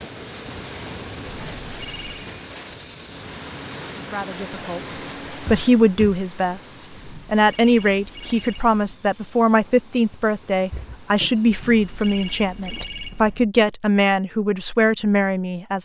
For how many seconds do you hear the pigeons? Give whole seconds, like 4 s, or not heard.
not heard.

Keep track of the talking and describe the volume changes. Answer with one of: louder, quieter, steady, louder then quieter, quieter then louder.
steady.